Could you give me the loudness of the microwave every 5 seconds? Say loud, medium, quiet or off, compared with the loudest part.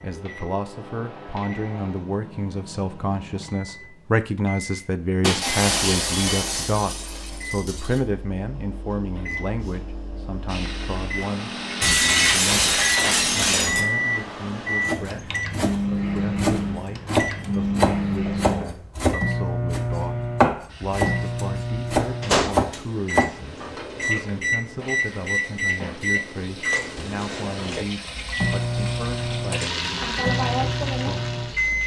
quiet, quiet, loud, loud, loud, loud, loud.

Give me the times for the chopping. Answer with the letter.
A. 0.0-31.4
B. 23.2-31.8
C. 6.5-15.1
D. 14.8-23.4
D.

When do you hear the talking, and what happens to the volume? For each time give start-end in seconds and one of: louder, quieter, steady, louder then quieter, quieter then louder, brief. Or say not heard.
0.0-31.4 quieter.